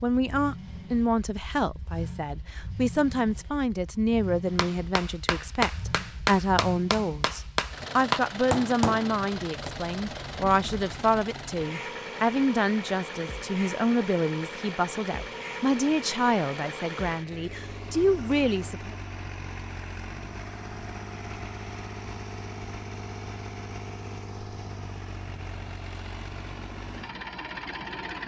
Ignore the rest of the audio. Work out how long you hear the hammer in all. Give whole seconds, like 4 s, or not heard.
5 s.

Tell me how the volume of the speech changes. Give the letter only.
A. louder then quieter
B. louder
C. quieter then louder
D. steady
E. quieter
D.